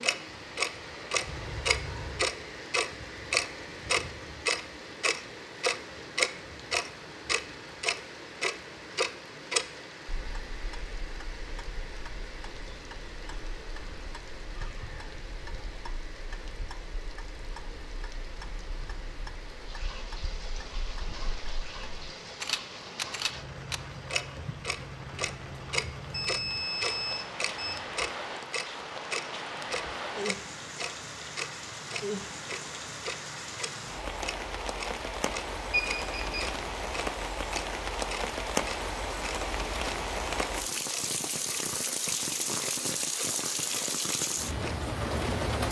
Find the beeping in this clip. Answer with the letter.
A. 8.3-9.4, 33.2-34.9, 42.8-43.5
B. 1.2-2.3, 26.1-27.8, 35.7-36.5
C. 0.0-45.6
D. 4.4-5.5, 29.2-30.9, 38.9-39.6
B.